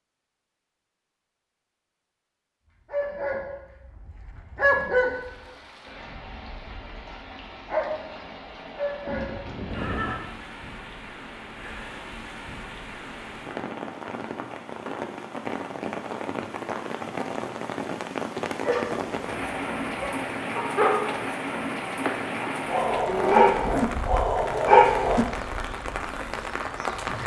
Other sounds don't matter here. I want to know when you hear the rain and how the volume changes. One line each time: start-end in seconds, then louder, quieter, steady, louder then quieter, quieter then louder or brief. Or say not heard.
5.0-27.2 louder.